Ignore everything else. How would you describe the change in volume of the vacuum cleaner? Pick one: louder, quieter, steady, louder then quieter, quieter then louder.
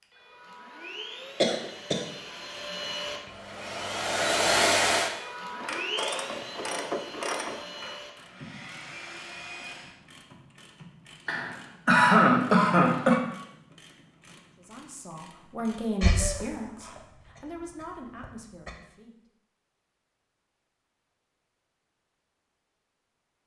louder then quieter.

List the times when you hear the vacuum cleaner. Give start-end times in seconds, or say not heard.
0.0-10.0.